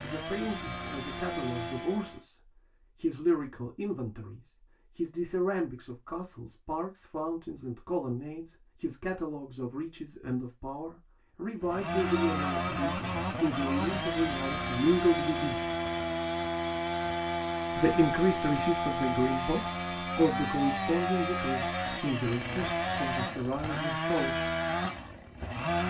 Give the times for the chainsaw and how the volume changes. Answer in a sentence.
You can hear the chainsaw briefly from 0.0 to 2.2 s; and from 11.6 to 25.8 s, at a steady volume.